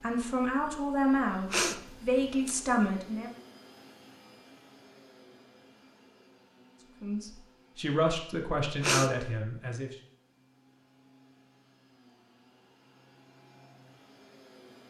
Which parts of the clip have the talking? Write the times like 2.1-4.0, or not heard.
0.0-3.3, 7.0-9.9.